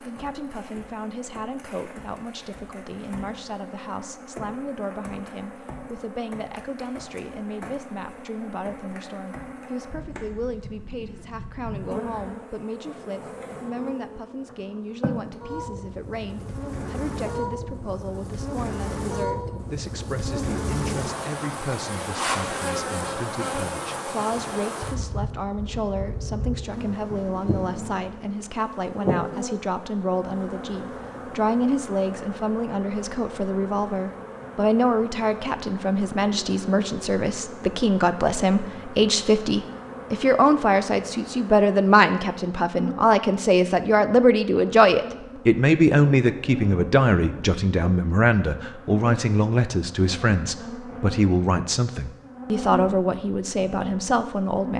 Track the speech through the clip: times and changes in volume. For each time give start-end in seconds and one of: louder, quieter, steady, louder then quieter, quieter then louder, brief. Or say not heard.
0.0-54.7 louder.